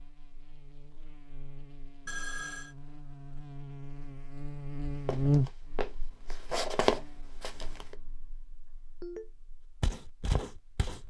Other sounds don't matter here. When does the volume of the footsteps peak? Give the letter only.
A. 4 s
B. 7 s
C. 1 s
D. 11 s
B.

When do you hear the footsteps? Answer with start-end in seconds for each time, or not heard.
5.0-8.0, 9.8-11.0.